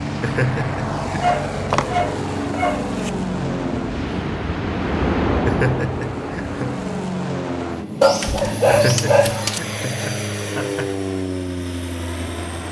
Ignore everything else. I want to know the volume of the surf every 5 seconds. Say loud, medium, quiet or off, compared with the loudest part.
medium, loud, off.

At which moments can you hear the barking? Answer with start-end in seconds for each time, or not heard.
1.2-3.1, 8.0-9.6.